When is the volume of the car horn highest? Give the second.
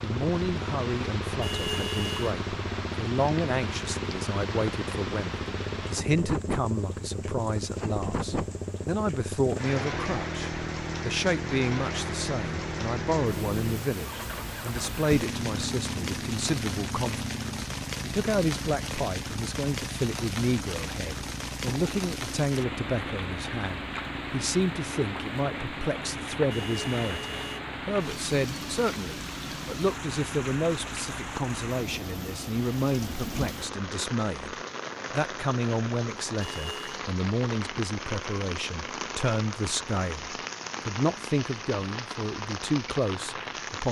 2 s.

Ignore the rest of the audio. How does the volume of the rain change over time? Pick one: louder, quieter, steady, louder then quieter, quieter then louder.
steady.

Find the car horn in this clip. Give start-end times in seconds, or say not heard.
1.4-2.4, 26.5-27.6, 36.4-37.0.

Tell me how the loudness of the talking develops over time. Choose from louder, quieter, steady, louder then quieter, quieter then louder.
steady.